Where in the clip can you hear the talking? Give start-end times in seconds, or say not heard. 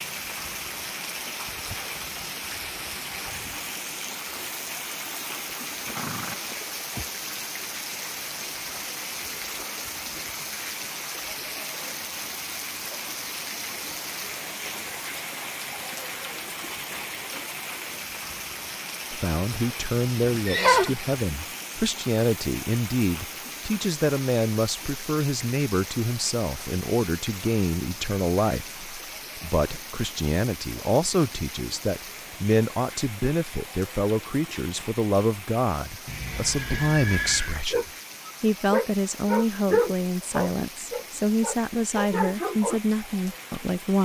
19.1-44.0.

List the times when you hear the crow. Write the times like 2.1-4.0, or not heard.
not heard.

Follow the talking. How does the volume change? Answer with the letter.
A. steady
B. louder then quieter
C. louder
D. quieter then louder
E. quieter
A.